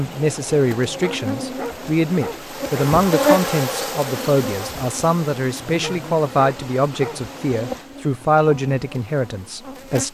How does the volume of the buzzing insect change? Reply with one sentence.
The volume of the buzzing insect goes up, then down.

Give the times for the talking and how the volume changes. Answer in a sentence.
You can hear the talking from 0.0 to 10.1 s, at a steady volume.